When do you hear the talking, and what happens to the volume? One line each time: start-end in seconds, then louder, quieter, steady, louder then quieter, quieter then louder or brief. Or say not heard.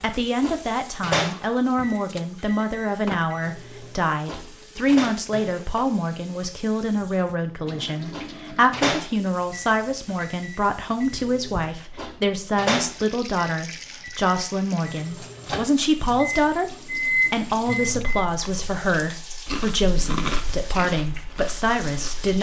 0.0-22.3 steady.